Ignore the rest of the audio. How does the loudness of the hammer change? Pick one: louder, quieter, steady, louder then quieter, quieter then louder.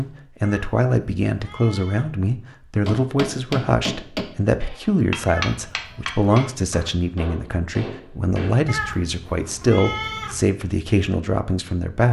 quieter.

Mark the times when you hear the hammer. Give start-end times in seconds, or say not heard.
2.9-8.5.